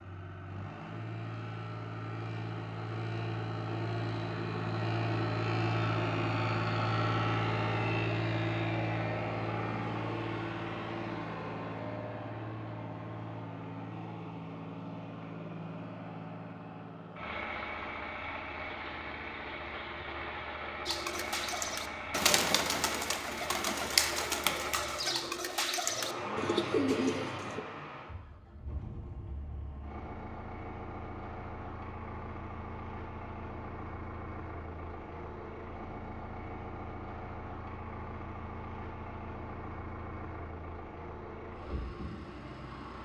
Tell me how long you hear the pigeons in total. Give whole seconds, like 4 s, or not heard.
7 s.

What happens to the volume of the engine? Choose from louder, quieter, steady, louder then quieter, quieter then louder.
quieter.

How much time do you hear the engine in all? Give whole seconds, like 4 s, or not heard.
43 s.